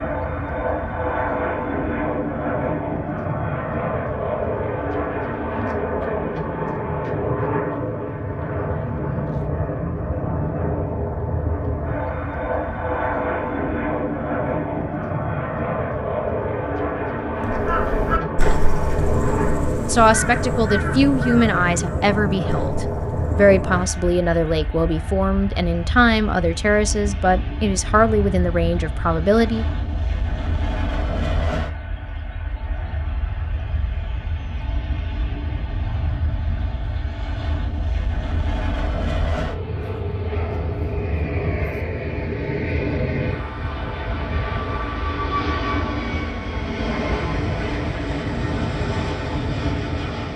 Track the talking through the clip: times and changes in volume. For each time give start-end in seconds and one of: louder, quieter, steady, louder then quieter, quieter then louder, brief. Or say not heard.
19.9-29.6 steady.